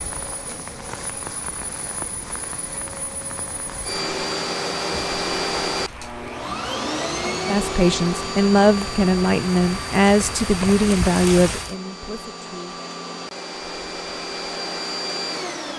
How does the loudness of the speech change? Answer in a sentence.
The loudness of the speech goes down.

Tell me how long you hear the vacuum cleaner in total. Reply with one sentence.
You can hear the vacuum cleaner for 16 seconds altogether.